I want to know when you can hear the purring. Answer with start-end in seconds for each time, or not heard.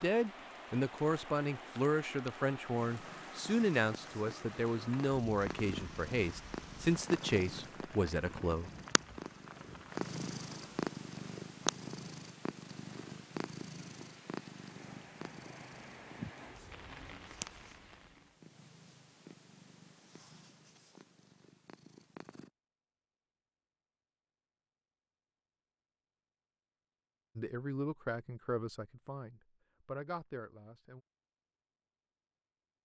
2.7-22.5.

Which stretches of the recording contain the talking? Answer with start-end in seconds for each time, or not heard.
0.0-8.7, 27.4-31.0.